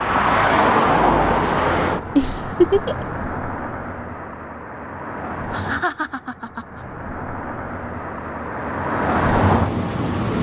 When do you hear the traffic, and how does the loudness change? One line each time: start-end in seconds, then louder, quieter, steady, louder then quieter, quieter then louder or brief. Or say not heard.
0.0-10.3 quieter then louder.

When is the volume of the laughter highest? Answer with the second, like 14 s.
3 s.